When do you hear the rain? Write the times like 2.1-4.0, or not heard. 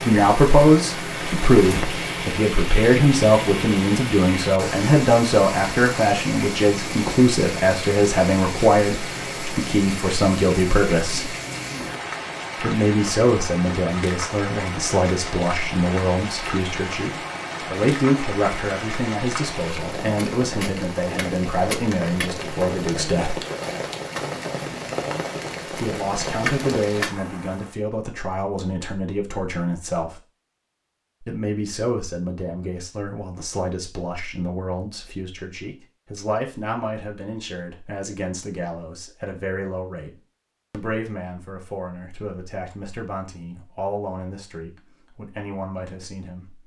0.0-27.8.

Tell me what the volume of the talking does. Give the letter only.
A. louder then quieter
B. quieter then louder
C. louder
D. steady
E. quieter
E.